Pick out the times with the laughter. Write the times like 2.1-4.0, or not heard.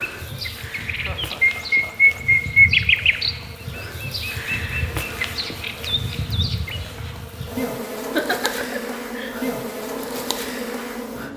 0.8-2.2, 8.2-9.3.